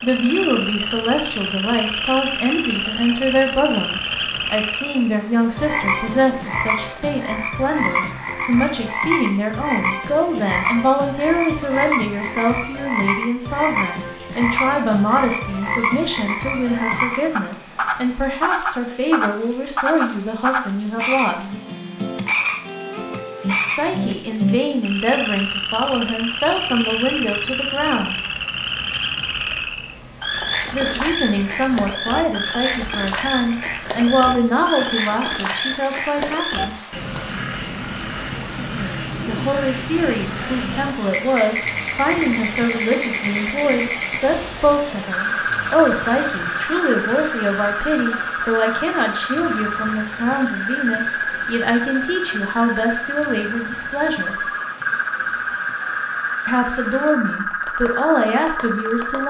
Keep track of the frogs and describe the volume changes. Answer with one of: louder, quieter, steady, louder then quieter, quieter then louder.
steady.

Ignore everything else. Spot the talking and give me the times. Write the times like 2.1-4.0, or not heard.
0.0-21.4, 23.7-28.1, 30.7-36.8, 39.2-54.4, 56.5-59.2.